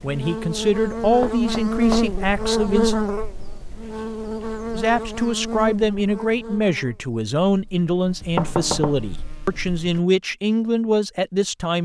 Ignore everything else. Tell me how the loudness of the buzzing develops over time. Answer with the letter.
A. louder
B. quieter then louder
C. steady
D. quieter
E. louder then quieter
D.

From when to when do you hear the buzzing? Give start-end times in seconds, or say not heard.
0.0-10.0.